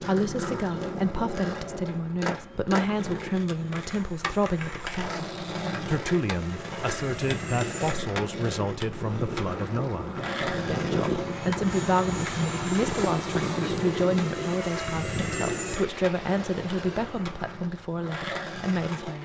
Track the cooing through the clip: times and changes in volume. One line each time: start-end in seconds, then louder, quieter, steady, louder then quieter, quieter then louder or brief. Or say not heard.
not heard.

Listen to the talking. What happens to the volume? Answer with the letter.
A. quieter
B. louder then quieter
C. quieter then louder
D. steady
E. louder
D.